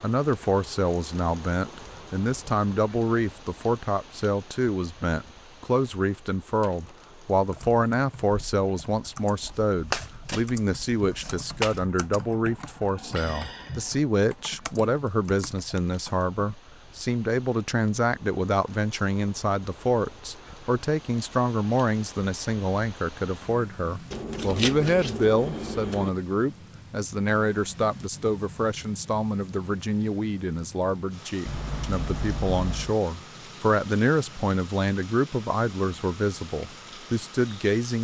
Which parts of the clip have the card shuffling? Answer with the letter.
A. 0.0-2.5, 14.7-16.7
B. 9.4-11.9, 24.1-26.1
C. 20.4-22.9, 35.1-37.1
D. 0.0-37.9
B.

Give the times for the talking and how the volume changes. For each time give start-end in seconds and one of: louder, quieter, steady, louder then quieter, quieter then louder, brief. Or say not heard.
0.0-37.9 steady.